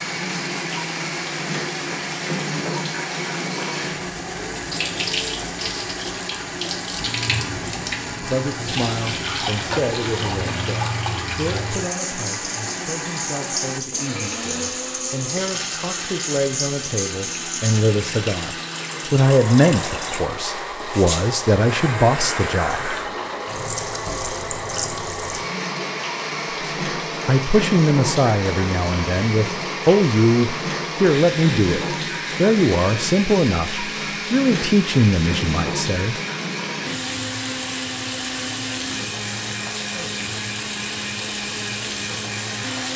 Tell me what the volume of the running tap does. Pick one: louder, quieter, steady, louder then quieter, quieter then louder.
steady.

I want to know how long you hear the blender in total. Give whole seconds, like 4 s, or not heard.
43 s.